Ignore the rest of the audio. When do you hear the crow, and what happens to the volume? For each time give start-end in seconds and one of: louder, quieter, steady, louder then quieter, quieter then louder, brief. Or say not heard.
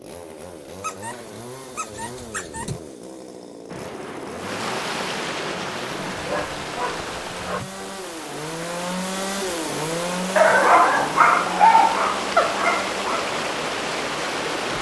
not heard.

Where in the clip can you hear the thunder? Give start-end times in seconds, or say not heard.
3.6-6.5.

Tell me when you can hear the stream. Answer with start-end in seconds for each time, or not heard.
4.3-14.7.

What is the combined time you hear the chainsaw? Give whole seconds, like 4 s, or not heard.
15 s.